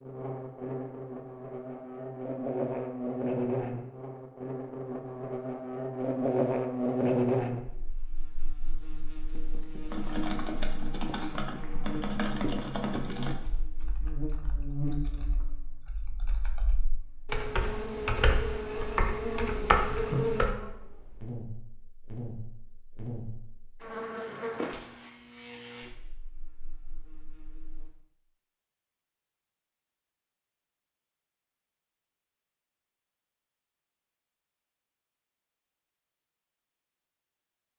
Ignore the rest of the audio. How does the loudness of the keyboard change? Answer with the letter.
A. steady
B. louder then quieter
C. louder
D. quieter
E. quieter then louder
E.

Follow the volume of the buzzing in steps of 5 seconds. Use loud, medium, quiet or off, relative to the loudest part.
loud, loud, medium, medium, medium, quiet, off, off.